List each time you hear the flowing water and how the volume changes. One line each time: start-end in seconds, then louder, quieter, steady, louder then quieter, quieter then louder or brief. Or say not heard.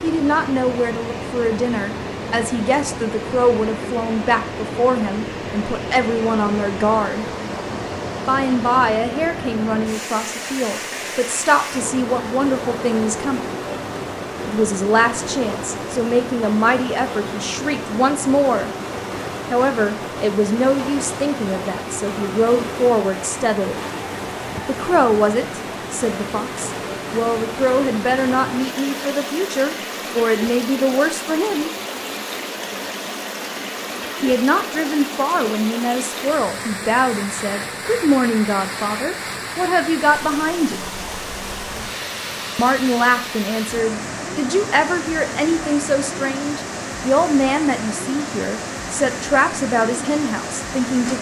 0.0-51.1 steady.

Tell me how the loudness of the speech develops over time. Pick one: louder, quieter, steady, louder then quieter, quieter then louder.
steady.